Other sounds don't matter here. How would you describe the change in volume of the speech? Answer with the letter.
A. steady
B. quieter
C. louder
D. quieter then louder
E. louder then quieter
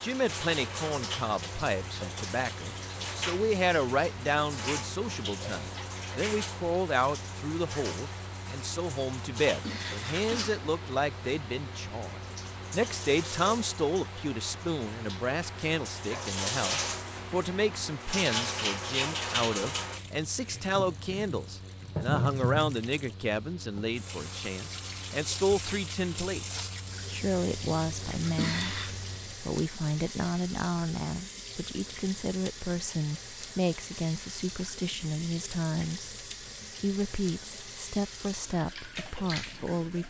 A.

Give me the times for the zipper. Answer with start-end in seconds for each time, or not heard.
not heard.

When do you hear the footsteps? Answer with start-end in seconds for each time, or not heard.
not heard.